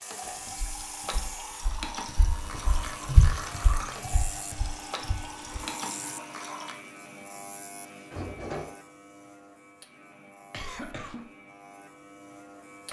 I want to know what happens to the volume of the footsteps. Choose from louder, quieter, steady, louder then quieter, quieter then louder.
louder then quieter.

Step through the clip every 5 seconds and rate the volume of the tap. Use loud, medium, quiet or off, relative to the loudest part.
loud, loud, off.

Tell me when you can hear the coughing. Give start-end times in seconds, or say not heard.
10.5-11.3.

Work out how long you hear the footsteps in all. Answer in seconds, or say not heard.
5 s.